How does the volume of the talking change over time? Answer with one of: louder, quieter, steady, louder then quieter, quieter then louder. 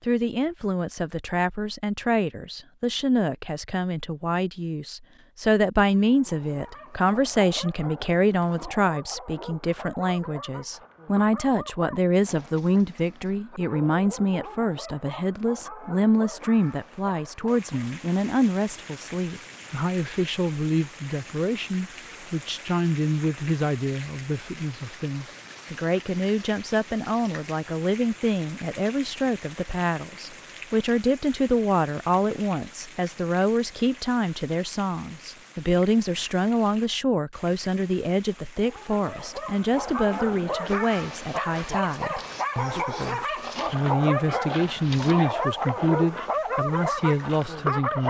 steady.